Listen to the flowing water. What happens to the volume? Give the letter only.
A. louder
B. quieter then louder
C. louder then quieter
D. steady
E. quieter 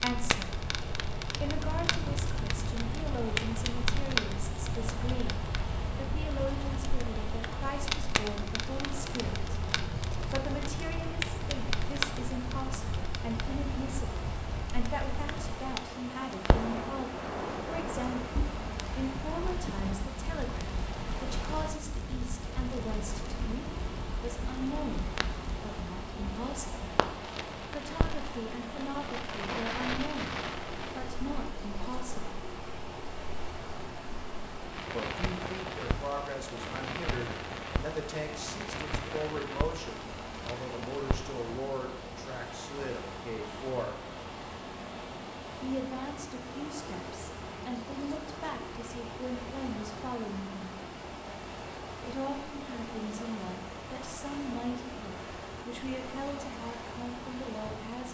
D.